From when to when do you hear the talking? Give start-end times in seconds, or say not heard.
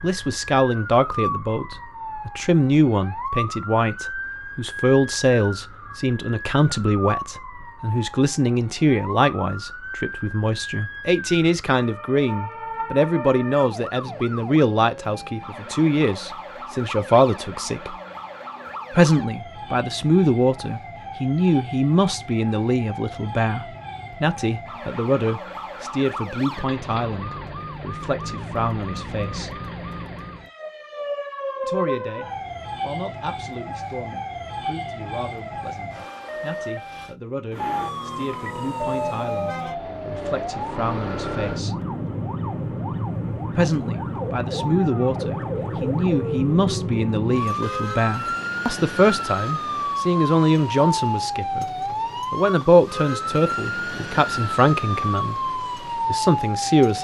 0.0-17.9, 18.9-29.6, 31.6-41.8, 43.5-51.6, 52.3-56.9.